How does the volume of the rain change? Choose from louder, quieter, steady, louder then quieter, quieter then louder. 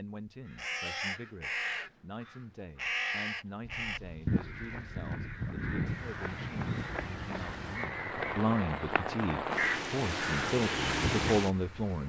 louder.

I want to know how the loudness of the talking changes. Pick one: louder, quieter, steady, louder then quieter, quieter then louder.
louder.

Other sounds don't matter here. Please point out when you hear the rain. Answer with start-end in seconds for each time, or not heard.
3.6-12.0.